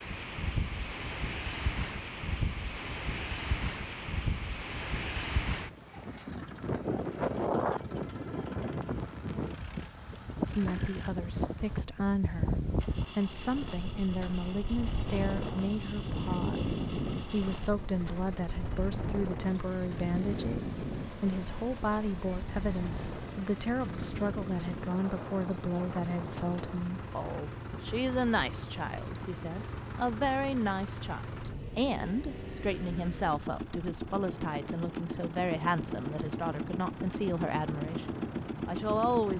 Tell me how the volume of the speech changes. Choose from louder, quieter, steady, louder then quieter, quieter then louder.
steady.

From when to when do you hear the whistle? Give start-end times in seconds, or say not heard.
not heard.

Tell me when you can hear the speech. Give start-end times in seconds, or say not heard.
10.4-39.3.